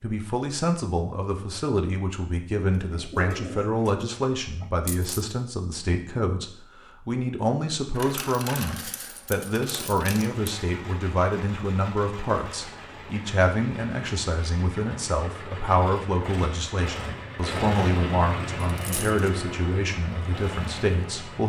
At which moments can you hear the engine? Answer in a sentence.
The engine can be heard from 10.2 to 21.4 s.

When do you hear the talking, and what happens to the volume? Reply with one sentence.
The talking can be heard from 0.0 to 21.4 s, at a steady volume.